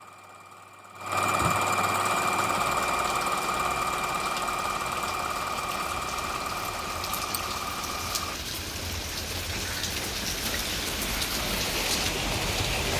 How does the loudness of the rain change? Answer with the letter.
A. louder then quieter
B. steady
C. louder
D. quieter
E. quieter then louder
C.